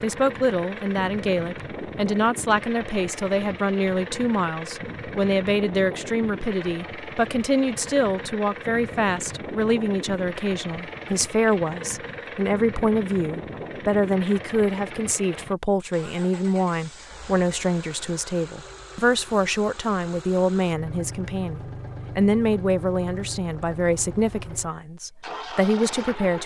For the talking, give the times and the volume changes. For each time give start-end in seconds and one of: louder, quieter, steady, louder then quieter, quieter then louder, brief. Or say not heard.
0.0-26.4 steady.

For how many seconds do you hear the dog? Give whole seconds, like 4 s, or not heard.
not heard.